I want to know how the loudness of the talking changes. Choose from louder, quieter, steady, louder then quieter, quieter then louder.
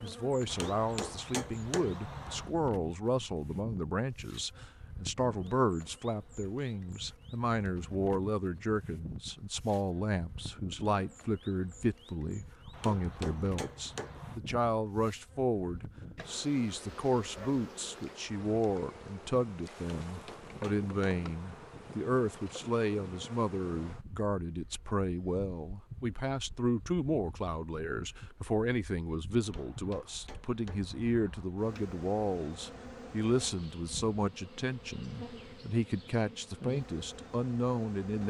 steady.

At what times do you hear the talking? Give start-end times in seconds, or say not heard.
0.0-38.2.